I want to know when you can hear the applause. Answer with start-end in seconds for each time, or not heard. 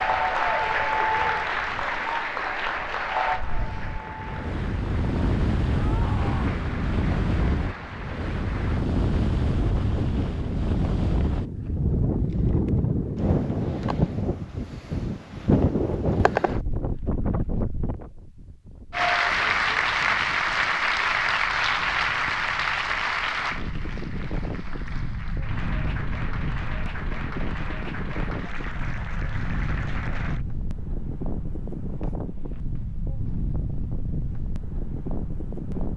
0.0-8.9, 18.9-30.4.